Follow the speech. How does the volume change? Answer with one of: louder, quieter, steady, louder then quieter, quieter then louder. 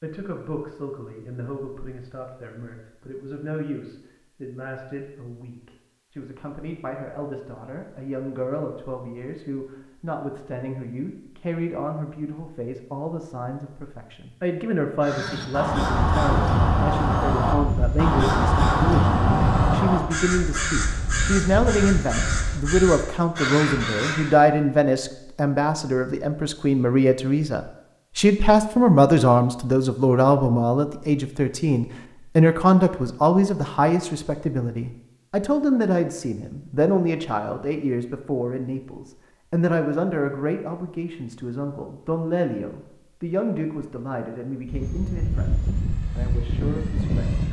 louder then quieter.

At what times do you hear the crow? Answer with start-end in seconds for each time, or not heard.
15.0-24.4.